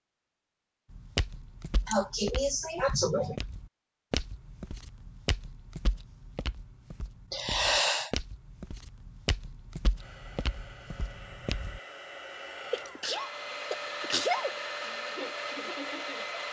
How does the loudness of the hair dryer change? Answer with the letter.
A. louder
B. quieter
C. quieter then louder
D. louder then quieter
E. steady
A.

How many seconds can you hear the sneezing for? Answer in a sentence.
The sneezing can be heard for 4 seconds in total.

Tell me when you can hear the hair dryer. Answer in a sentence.
The hair dryer can be heard from 9.9 to 16.4 s.